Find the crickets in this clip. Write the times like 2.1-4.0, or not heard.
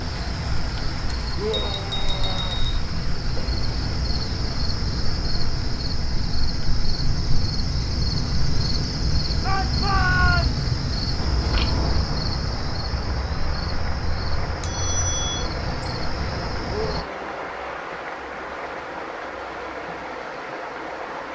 0.0-17.1.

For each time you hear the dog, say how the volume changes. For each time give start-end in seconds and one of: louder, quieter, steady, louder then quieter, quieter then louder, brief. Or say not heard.
not heard.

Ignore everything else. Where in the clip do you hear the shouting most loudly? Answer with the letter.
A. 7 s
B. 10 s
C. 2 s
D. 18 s
B.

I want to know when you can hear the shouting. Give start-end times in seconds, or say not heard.
1.4-2.6, 9.4-10.7, 16.6-17.6.